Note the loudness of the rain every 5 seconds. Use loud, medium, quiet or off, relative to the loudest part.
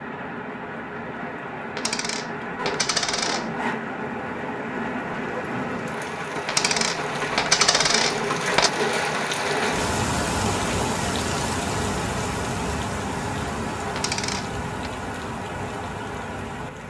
medium, loud, loud, medium.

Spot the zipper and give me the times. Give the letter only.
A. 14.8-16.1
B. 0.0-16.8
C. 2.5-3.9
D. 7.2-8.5
C.